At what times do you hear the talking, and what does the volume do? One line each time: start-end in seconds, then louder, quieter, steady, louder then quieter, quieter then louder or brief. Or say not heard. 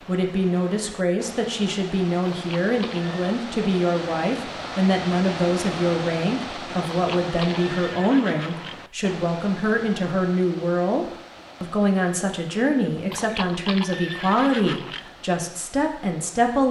0.1-16.6 steady.